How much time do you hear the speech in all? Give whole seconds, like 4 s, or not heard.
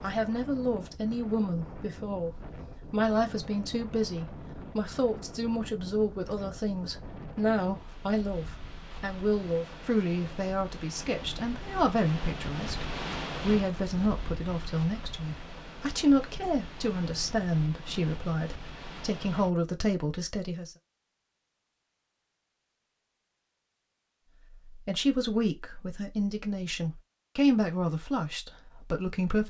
25 s.